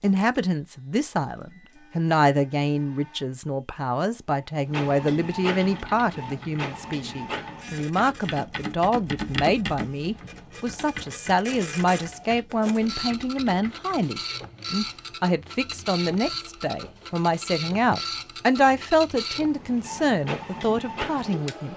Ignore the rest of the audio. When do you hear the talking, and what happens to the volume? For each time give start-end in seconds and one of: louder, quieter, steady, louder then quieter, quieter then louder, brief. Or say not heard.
0.0-21.7 steady.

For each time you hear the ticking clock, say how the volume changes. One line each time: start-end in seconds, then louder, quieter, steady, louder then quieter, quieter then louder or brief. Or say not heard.
not heard.